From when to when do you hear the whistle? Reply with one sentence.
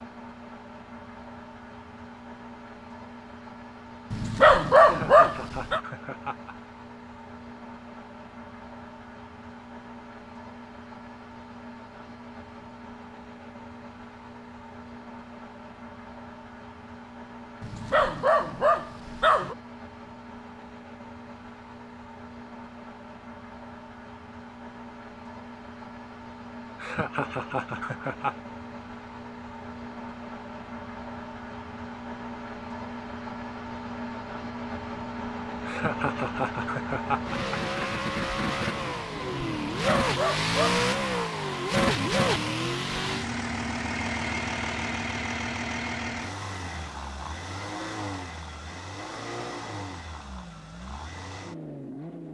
The whistle can't be heard in this clip.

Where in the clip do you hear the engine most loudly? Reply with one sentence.
The loudest moment of the engine is at 42 seconds.